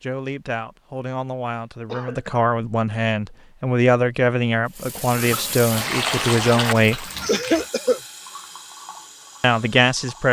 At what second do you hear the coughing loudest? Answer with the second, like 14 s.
7 s.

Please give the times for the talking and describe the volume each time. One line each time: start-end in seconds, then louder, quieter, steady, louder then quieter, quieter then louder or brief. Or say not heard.
0.0-7.1 louder
9.4-10.2 brief.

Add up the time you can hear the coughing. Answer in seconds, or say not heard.
2 s.